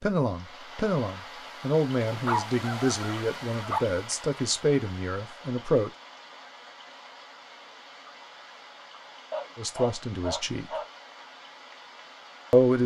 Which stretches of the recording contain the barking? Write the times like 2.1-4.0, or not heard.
2.0-3.8, 9.3-10.9.